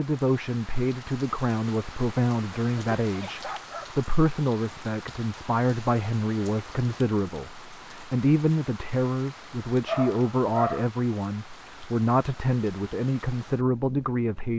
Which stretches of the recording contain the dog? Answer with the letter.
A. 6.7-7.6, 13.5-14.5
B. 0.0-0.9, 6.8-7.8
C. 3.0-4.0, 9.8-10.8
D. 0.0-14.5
C.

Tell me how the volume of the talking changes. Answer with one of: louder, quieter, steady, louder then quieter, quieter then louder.
steady.